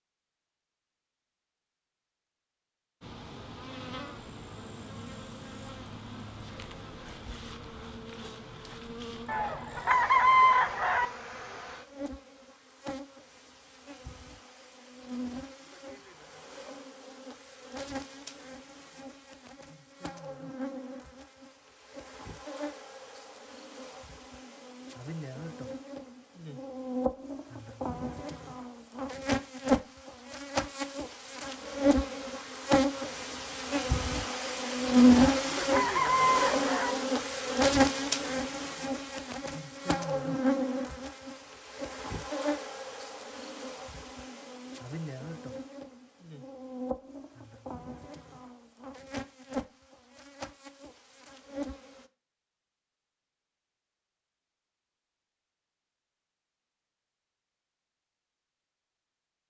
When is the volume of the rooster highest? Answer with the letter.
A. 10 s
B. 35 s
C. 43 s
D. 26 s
A.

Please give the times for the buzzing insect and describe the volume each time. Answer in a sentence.
You can hear the buzzing insect from 3.0 to 52.1 s, getting louder then quieter.